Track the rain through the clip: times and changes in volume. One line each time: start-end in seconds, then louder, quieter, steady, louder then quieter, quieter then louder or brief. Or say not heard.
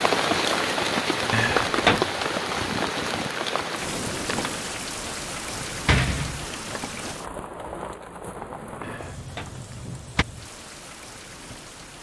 0.0-11.9 quieter.